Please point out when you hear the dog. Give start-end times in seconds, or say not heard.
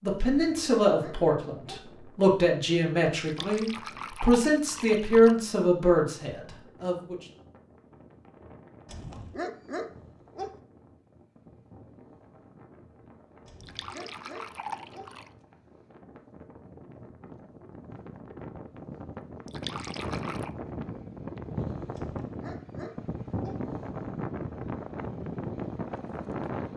0.3-1.8, 8.8-10.6, 13.4-15.1, 21.9-23.6.